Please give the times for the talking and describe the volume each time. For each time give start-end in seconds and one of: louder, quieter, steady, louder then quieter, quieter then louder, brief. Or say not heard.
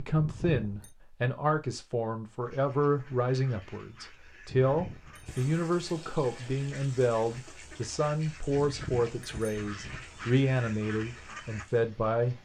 0.0-12.3 steady.